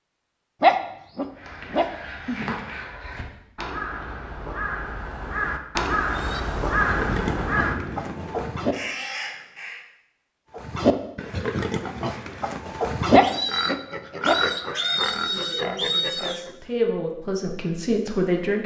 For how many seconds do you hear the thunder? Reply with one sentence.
You can hear the thunder for 2 seconds altogether.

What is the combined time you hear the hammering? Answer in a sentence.
The hammering can't be heard in this clip.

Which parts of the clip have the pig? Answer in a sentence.
You can hear the pig from 6.1 to 8.8 s and from 10.5 to 16.5 s.